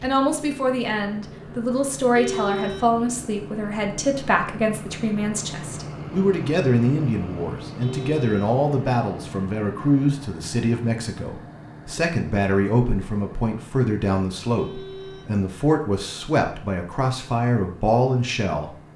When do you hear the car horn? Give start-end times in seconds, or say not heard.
2.1-3.0, 7.8-8.7, 14.6-15.4.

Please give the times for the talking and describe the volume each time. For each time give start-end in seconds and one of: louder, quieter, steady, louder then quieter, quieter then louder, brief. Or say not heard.
0.0-18.8 steady.